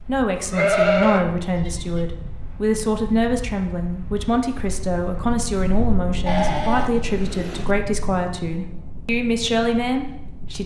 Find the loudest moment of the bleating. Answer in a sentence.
The loudest moment of the bleating is at 1 second.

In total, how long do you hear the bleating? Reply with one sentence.
You can hear the bleating for 3 seconds altogether.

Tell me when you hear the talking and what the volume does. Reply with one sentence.
You can hear the talking from 0.1 to 10.6 s, at a steady volume.